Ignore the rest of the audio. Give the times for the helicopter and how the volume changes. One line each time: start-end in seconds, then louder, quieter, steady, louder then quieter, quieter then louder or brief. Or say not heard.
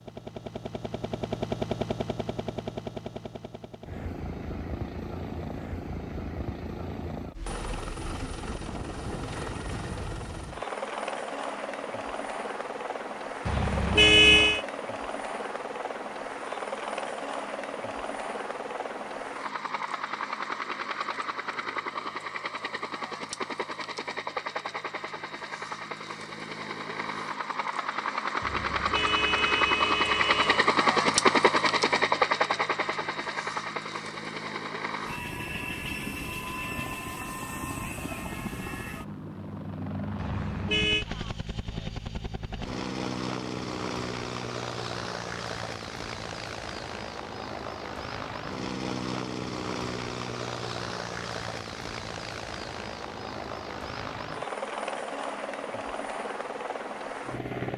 0.0-57.7 louder then quieter.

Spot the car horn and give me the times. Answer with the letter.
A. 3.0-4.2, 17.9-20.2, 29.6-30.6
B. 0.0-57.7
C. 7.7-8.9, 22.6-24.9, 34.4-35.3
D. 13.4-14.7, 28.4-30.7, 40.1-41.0
D.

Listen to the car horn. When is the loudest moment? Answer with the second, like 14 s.
14 s.